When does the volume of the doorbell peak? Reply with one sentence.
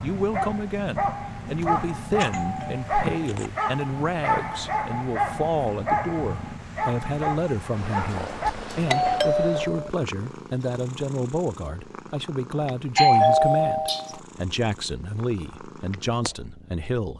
The loudest moment of the doorbell is at 13 seconds.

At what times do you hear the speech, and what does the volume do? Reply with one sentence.
You can hear the speech from 0.0 to 17.1 s, at a steady volume.